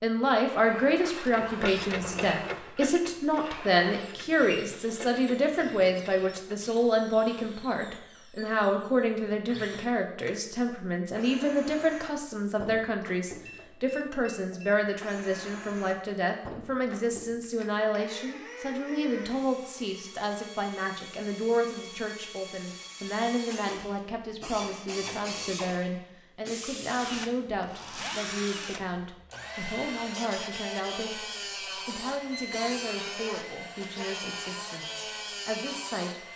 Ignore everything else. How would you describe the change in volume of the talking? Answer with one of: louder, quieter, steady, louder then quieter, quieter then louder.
quieter.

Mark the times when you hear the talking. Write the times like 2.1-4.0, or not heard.
0.0-36.2.